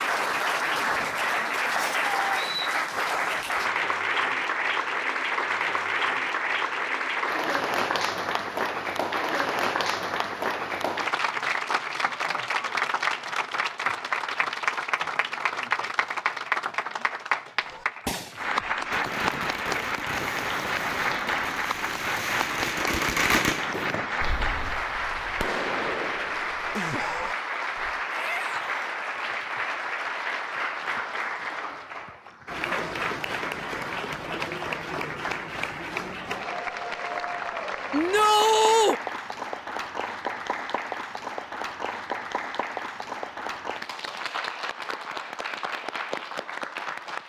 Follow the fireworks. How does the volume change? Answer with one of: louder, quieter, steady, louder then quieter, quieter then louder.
louder then quieter.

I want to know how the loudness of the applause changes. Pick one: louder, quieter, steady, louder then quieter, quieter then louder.
quieter.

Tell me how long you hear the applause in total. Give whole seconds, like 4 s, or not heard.
47 s.